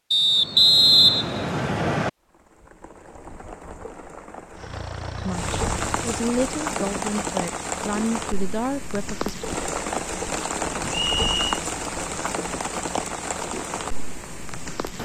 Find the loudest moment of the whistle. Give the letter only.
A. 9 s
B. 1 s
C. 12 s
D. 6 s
B.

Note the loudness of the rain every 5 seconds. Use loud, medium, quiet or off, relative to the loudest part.
quiet, loud, loud.